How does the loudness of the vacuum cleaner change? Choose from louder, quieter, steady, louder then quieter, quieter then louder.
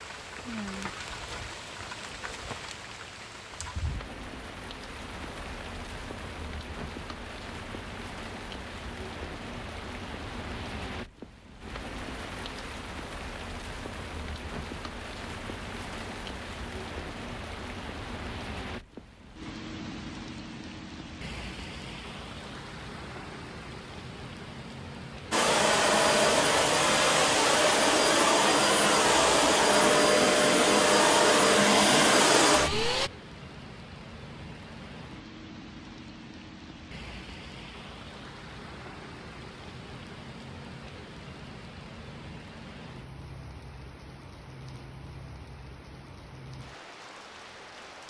steady.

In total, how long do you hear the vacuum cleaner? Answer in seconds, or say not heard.
8 s.